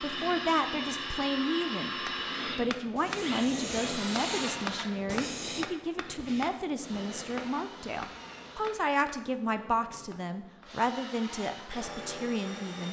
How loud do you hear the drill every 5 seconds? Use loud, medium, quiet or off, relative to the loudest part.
loud, quiet, medium.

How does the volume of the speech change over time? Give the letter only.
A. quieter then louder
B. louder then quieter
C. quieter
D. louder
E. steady
E.